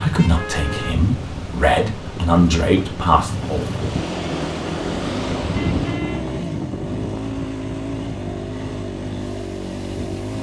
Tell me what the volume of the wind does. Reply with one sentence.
The volume of the wind goes up, then down.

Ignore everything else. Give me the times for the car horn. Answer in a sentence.
The car horn can be heard from 0.3 to 0.9 s and from 5.5 to 6.2 s.